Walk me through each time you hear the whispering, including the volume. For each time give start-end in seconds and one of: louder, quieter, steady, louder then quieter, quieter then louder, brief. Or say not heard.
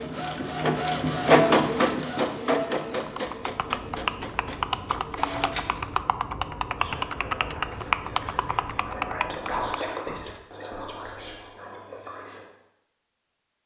6.8-12.4 louder then quieter.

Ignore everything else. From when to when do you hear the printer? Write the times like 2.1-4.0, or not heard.
0.0-6.0.